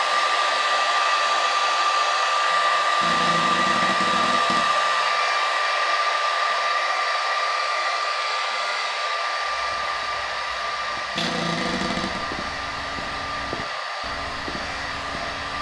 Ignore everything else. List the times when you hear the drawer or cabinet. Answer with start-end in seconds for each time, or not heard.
3.0-4.7, 11.2-12.2.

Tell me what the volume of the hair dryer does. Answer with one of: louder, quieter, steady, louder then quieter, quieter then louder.
quieter.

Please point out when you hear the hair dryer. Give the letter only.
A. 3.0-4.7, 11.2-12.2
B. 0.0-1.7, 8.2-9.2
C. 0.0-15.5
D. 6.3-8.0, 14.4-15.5
C.